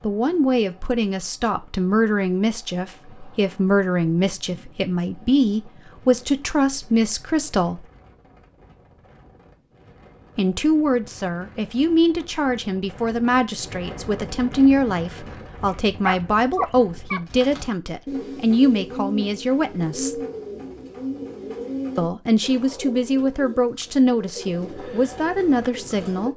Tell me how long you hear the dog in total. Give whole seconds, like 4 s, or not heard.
2 s.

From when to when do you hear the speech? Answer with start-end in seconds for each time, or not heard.
0.0-7.8, 10.3-20.2, 21.9-26.3.